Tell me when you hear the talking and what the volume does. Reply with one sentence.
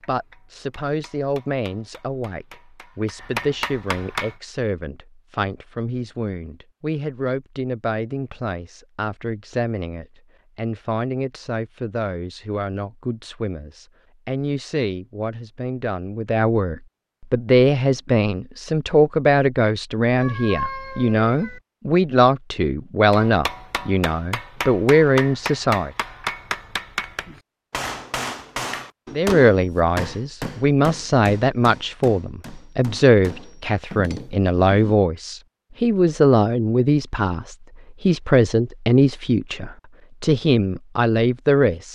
The talking can be heard from 0.1 to 25.9 s, getting louder; and from 29.1 to 41.8 s, at a steady volume.